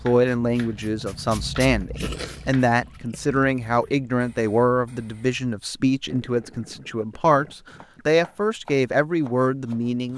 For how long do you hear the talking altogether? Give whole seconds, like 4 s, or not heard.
10 s.